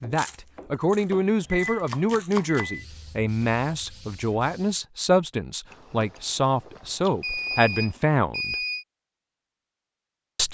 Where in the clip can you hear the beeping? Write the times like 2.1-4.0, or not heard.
1.4-2.9, 7.2-8.8.